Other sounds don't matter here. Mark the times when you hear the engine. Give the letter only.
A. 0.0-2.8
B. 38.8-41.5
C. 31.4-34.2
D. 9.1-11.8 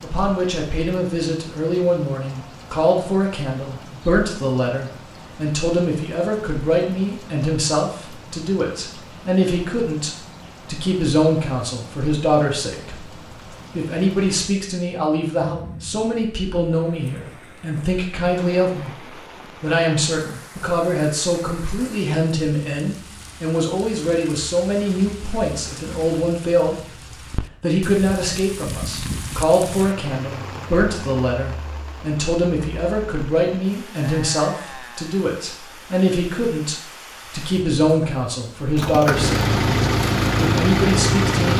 B.